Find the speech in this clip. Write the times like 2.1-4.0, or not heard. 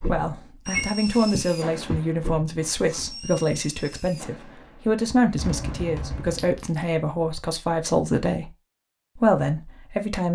0.1-8.5, 9.2-10.2.